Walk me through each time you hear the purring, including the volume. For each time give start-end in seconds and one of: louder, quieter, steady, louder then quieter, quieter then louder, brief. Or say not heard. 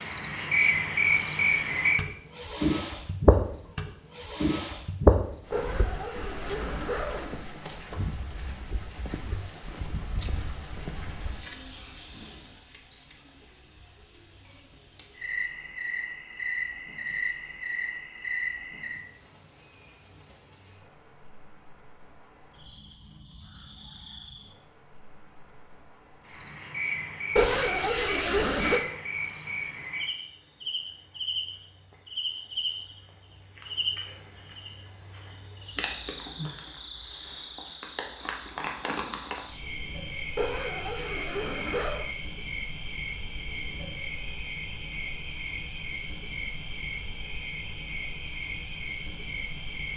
not heard.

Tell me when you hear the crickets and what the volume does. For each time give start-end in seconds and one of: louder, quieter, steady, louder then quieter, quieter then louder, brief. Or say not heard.
0.0-49.9 quieter.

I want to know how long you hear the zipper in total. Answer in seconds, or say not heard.
5 s.